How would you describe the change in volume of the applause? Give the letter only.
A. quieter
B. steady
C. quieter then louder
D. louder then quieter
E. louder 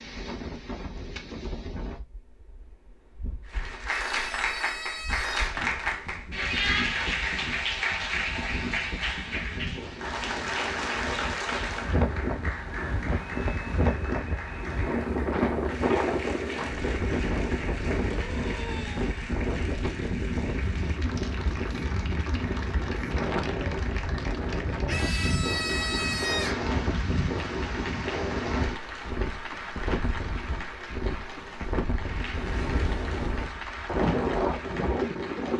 A.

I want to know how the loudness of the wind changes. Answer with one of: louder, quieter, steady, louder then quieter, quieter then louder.
louder.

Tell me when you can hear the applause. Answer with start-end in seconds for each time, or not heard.
3.5-35.5.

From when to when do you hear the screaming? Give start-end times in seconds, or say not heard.
4.0-5.5, 18.1-19.1, 24.9-26.6.